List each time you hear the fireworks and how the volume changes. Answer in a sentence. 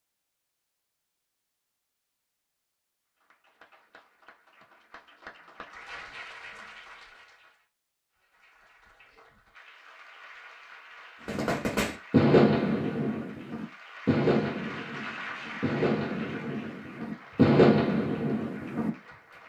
You can hear the fireworks from 11.2 to 18.9 s, getting quieter then louder.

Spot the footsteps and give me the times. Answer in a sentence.
The footsteps can't be heard in this clip.